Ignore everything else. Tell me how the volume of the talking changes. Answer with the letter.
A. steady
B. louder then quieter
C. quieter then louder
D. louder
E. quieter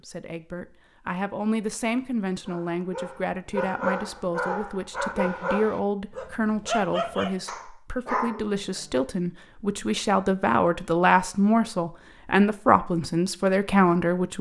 D.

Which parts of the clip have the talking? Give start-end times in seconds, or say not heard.
0.0-14.3.